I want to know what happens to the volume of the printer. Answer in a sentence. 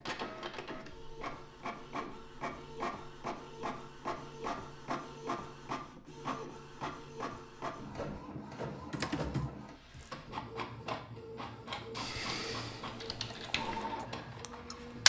The loudness of the printer stays about the same.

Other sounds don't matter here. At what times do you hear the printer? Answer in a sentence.
You can hear the printer from 0.0 to 15.0 s.